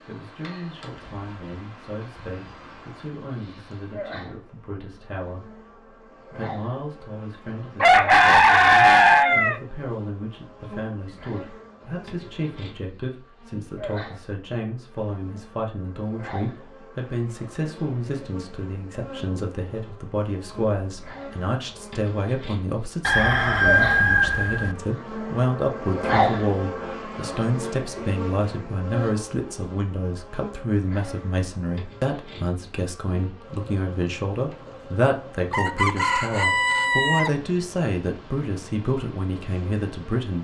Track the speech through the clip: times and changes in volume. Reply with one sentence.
You can hear the speech from 0.1 to 5.6 s, at a steady volume; and from 6.3 to 40.3 s, getting louder.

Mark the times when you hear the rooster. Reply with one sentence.
The rooster can be heard from 7.8 to 9.6 s, from 23.1 to 24.8 s and from 35.5 to 37.3 s.